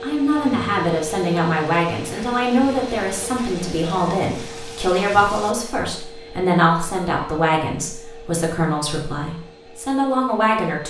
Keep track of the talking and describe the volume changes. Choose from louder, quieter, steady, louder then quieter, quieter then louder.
steady.